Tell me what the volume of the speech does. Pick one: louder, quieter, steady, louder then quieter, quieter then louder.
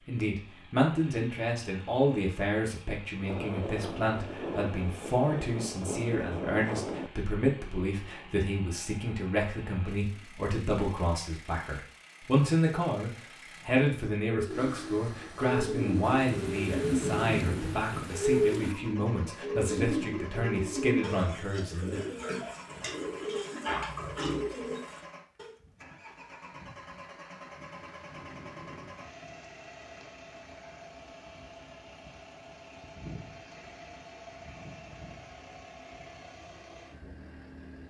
steady.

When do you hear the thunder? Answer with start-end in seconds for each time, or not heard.
3.2-7.1, 16.1-18.8, 27.3-30.0.